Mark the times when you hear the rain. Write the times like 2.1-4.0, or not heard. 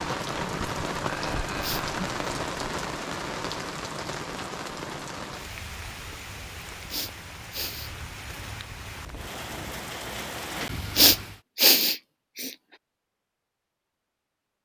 0.0-11.4.